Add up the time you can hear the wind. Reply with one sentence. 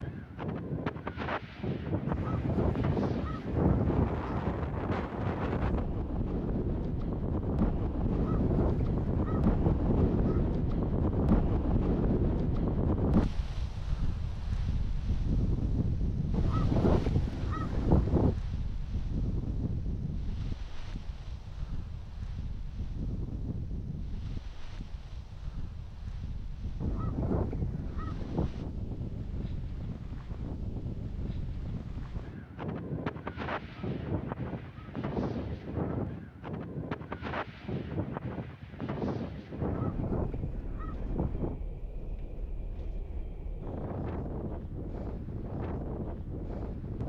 You can hear the wind for 47 seconds altogether.